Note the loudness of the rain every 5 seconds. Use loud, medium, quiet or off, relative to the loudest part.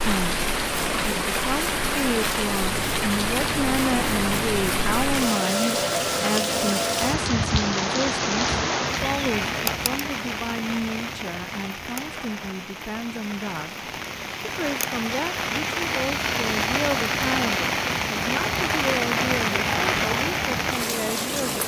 loud, loud, medium, loud, loud.